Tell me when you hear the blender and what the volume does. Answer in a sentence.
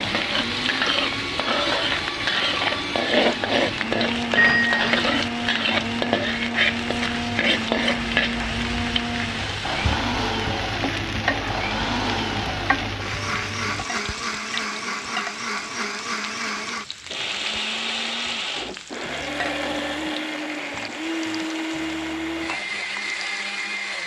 You can hear the blender from 0.0 to 24.0 s, at a steady volume.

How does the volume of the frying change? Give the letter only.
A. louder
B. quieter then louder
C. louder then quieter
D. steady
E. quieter
E.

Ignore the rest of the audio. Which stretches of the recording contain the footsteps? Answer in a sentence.
The footsteps can't be heard in this clip.